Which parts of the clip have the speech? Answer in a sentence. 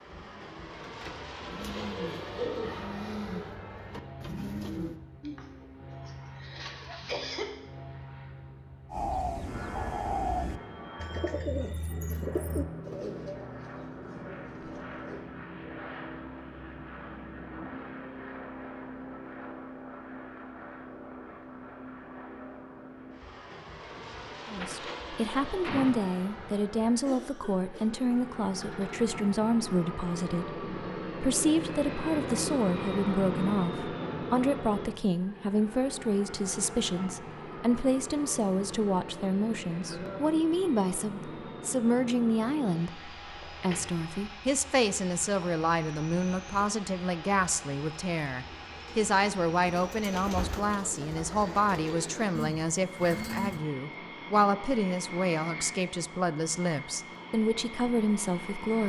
The speech can be heard from 24.4 to 58.8 s.